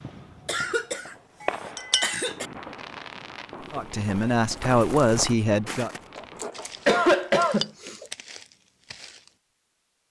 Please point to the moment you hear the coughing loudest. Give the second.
7 s.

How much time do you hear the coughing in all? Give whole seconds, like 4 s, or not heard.
3 s.